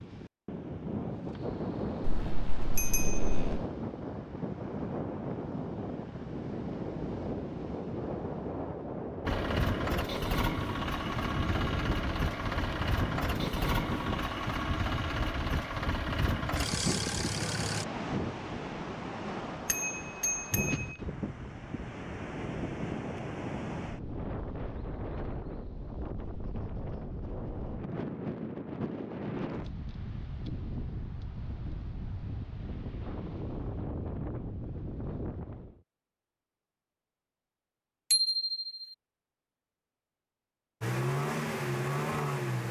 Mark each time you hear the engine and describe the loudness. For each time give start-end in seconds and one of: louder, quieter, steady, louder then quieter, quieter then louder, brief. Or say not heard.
9.2-17.9 steady
40.8-42.6 brief.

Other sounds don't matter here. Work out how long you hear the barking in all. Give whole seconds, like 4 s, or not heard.
not heard.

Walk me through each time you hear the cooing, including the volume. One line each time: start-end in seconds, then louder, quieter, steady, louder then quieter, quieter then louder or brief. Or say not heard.
not heard.